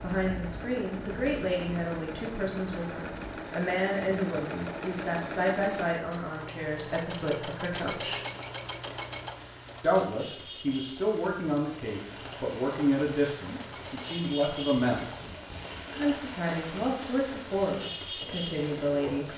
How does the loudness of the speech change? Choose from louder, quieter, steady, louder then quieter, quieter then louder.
steady.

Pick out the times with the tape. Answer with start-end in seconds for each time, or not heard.
15.0-15.9.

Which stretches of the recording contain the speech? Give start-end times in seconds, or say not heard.
0.0-8.2, 9.8-15.2, 15.9-19.2.